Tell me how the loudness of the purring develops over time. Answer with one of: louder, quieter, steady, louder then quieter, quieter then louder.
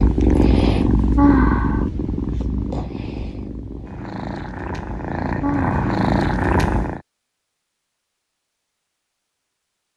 quieter then louder.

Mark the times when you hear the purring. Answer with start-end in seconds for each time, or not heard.
0.0-7.0.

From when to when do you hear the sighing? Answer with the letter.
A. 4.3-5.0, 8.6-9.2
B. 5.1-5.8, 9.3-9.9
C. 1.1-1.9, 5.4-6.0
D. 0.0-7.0
C.